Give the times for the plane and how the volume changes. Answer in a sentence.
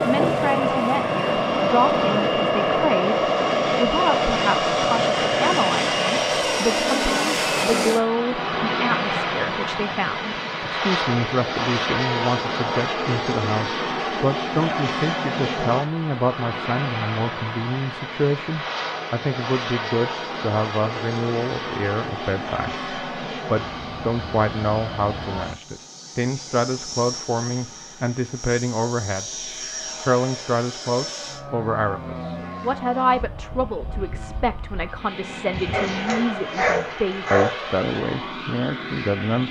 The plane can be heard from 0.0 to 39.4 s, getting quieter.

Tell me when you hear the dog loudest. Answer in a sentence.
The loudest moment of the dog is at 37 seconds.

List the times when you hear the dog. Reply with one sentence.
You can hear the dog from 35.5 to 37.5 s.